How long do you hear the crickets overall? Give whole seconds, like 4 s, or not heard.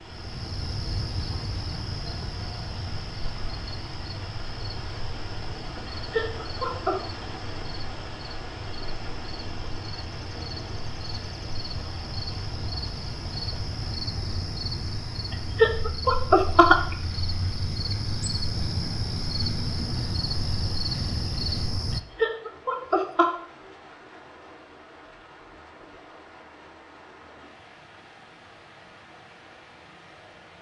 22 s.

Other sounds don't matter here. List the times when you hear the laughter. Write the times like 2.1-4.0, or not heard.
5.8-7.0, 15.6-16.9, 22.1-23.3.